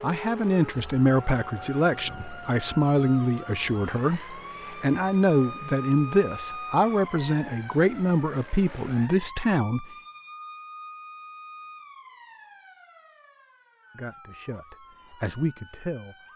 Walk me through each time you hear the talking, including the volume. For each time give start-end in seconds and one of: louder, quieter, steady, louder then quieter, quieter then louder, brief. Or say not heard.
0.0-9.8 steady
13.9-16.2 brief.